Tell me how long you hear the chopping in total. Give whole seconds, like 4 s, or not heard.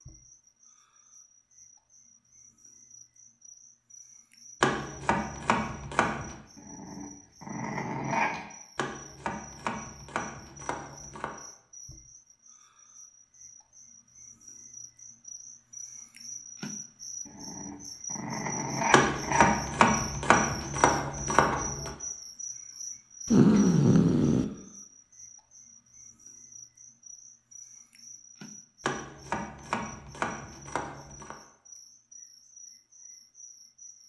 10 s.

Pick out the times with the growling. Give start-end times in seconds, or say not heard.
6.5-8.4, 17.2-19.6, 23.2-24.4.